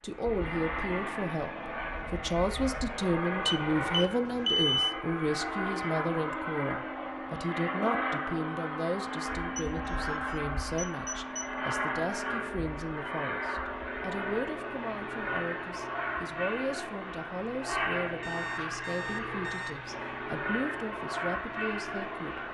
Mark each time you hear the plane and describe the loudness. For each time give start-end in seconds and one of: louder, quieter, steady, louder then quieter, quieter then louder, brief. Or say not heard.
0.0-22.4 steady.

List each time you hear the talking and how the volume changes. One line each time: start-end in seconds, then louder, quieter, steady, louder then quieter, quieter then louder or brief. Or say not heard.
0.0-22.4 quieter.